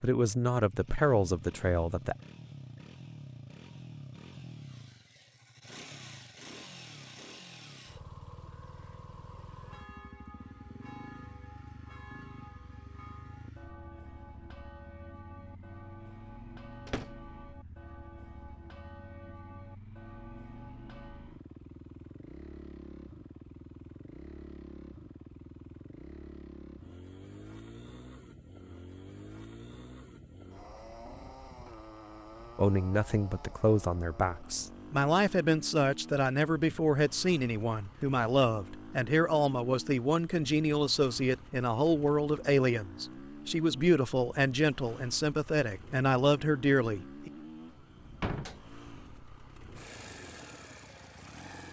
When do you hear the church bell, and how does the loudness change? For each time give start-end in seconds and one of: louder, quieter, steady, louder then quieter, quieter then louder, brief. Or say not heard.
9.5-21.4 steady.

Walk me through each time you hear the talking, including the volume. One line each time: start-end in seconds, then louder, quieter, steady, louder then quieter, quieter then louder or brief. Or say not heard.
0.0-2.1 brief
32.5-47.3 steady.